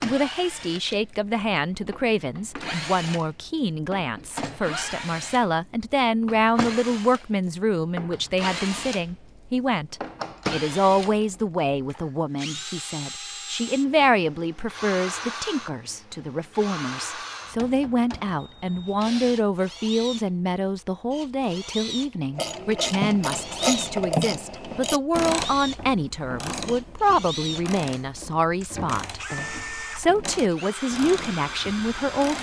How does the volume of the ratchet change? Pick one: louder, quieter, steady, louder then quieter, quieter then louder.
quieter.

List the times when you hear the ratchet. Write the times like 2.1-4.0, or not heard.
22.3-32.3.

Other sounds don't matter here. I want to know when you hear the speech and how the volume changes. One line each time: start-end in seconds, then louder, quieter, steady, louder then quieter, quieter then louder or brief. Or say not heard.
0.0-32.3 steady.